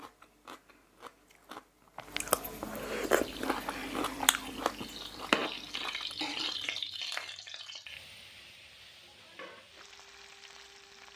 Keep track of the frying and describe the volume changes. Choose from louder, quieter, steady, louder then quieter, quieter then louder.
louder then quieter.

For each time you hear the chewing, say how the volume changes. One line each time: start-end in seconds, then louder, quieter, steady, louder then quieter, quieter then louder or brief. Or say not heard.
0.0-6.7 louder.